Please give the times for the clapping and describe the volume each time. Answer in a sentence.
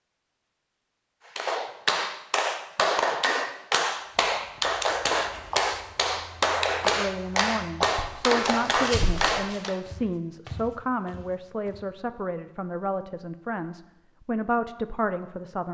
You can hear the clapping from 1.4 to 9.8 s, at a steady volume.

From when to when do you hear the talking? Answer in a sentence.
You can hear the talking from 6.8 to 15.6 s.